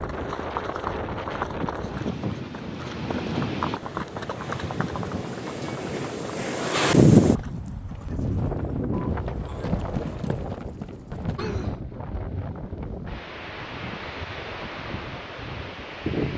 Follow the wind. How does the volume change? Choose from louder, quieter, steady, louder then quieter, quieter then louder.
louder then quieter.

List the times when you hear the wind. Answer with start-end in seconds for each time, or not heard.
0.0-16.3.